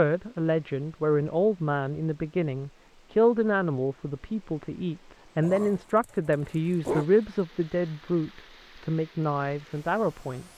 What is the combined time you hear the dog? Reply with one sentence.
The dog can be heard for 2 seconds in total.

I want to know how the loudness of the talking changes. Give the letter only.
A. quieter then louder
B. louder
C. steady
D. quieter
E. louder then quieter
C.